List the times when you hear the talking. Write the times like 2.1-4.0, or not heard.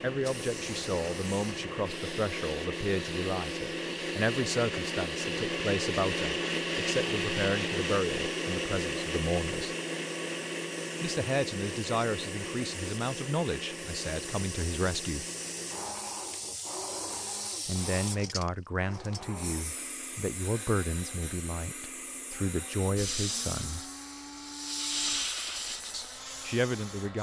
0.0-9.8, 11.0-15.2, 17.6-23.9, 25.9-27.1.